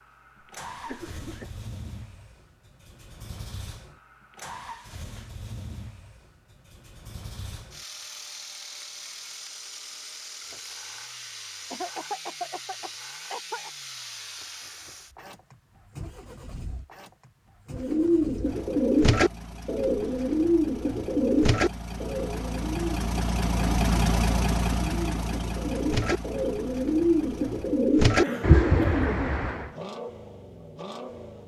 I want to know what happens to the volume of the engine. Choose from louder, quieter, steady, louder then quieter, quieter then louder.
louder then quieter.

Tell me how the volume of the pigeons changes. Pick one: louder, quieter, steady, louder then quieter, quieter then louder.
quieter then louder.